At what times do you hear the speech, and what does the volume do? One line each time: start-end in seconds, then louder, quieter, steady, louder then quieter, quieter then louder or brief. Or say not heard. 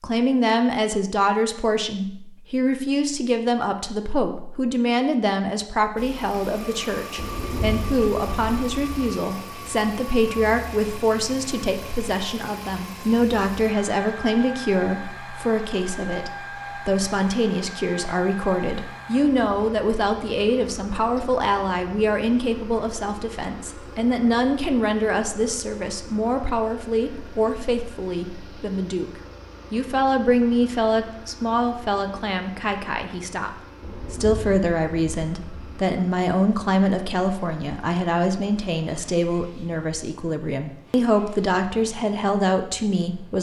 0.0-33.5 steady
34.1-43.3 steady.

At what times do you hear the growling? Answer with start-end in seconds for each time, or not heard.
not heard.